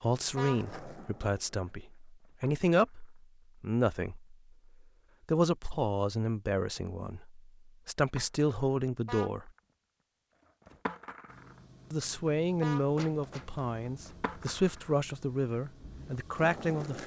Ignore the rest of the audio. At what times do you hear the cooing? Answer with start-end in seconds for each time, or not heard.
not heard.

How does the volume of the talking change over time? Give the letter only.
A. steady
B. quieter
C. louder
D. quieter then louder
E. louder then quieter
A.